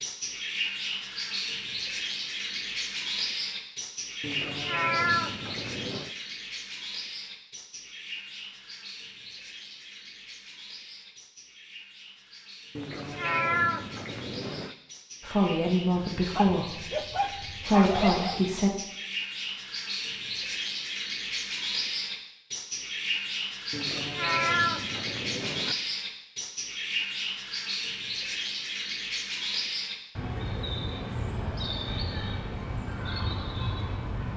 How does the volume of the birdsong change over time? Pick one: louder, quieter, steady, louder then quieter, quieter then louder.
quieter then louder.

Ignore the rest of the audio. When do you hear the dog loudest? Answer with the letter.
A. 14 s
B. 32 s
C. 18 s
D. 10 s
C.